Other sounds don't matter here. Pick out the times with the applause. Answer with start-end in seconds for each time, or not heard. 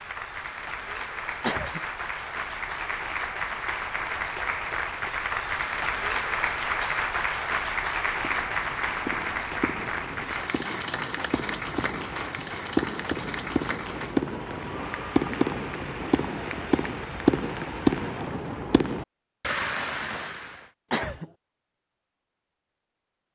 0.0-18.4.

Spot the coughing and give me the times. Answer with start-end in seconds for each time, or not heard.
1.4-1.8, 20.9-21.3.